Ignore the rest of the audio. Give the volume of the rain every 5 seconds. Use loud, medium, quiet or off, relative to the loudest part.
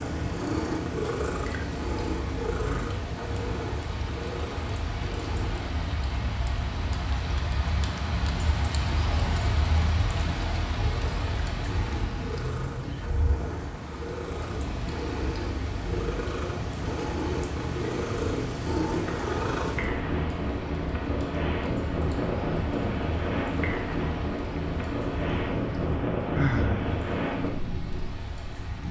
medium, loud, loud, medium, medium, medium.